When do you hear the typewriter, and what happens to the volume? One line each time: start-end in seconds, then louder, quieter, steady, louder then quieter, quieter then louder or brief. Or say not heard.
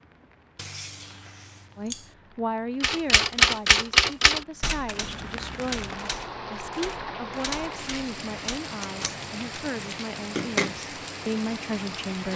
2.8-9.7 quieter.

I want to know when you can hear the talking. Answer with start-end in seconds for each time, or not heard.
1.8-12.3.